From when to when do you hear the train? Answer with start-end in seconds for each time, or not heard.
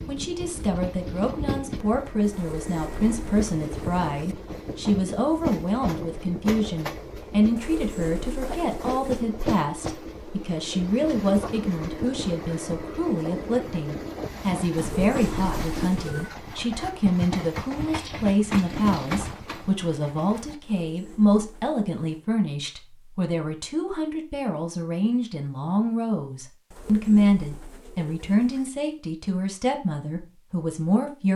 0.0-20.6.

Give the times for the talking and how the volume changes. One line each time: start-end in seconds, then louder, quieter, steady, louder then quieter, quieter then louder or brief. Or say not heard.
0.1-31.3 steady.